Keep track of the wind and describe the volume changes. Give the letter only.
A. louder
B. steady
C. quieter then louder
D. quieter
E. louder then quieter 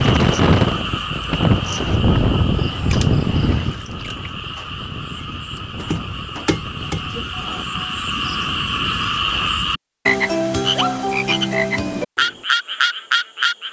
D.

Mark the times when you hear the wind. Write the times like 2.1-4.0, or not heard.
0.0-9.8.